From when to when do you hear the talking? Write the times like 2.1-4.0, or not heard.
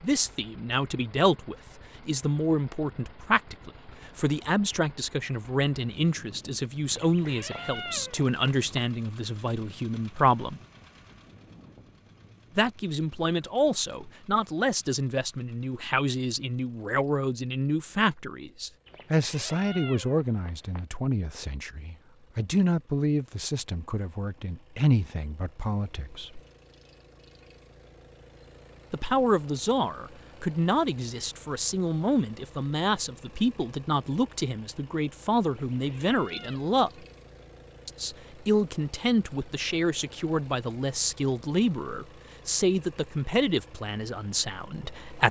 0.0-10.6, 12.6-26.4, 28.9-36.9, 37.9-45.2.